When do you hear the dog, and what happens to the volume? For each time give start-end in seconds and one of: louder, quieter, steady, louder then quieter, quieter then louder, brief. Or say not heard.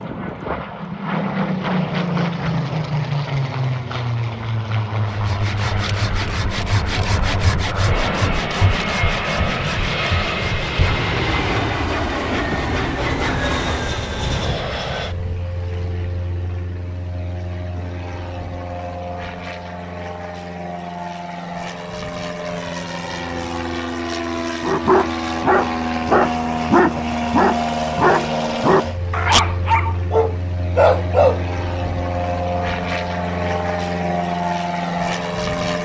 24.6-31.4 steady.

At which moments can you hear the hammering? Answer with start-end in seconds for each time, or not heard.
not heard.